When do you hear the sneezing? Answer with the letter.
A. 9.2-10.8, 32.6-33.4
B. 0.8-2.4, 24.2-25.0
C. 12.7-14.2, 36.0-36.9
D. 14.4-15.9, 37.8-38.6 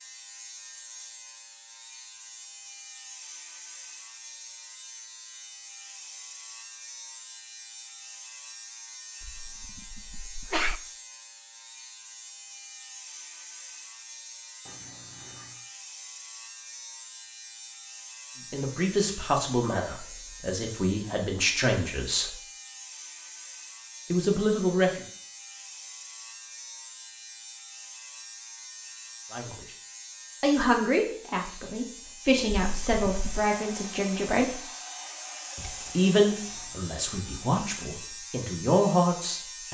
A.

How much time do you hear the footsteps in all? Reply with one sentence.
The footsteps can't be heard in this clip.